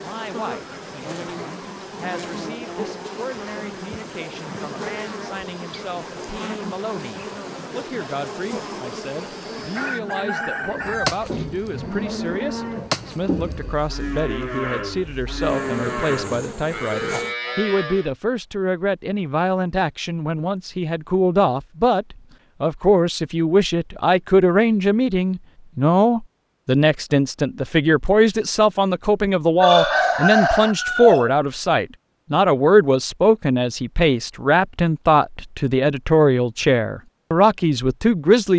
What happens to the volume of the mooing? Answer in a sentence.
The loudness of the mooing stays about the same.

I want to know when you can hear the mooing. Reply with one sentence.
The mooing can be heard from 10.6 to 18.1 s.